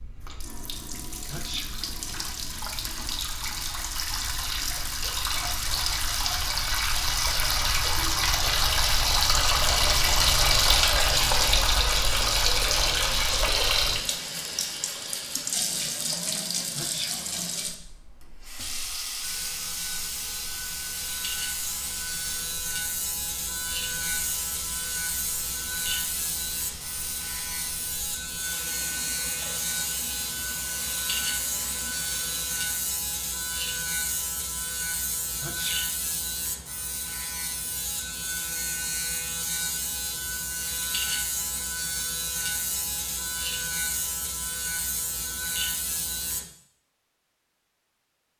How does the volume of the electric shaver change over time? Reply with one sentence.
The loudness of the electric shaver stays about the same.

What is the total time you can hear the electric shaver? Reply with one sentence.
You can hear the electric shaver for 27 seconds altogether.